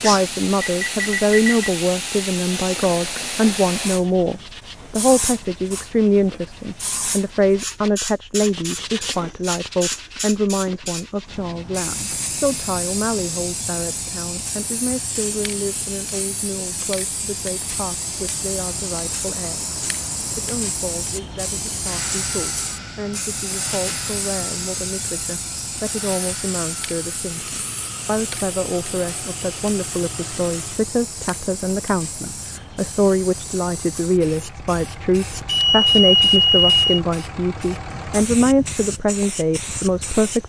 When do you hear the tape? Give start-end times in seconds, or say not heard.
not heard.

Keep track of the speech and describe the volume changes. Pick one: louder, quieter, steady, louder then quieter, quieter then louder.
quieter then louder.